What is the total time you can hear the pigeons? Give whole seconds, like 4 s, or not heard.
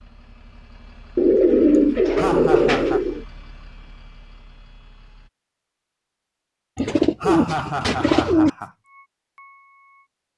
4 s.